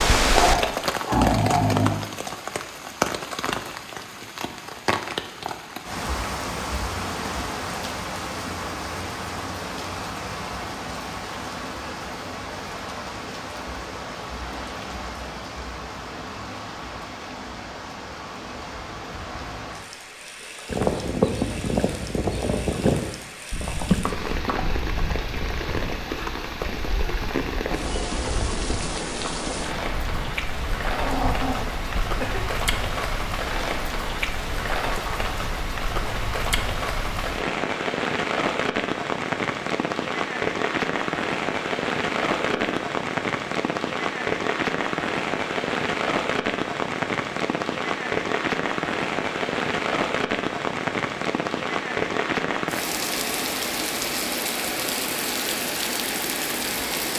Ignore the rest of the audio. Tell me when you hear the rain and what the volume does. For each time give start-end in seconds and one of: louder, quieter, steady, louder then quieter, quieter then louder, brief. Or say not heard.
0.0-57.1 quieter then louder.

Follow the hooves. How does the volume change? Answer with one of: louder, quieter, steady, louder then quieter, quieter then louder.
quieter.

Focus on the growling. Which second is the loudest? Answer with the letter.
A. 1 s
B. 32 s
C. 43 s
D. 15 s
A.